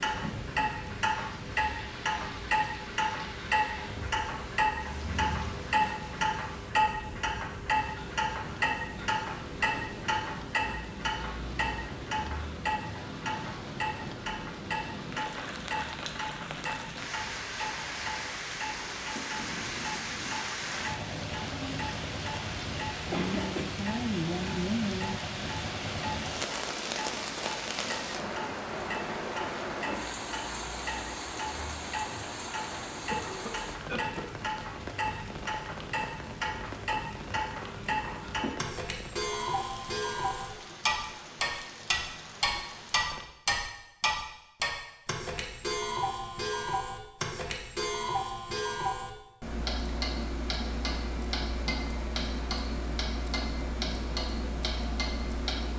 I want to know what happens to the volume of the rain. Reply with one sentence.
The loudness of the rain goes up, then down.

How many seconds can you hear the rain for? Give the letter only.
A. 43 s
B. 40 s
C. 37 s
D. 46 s
A.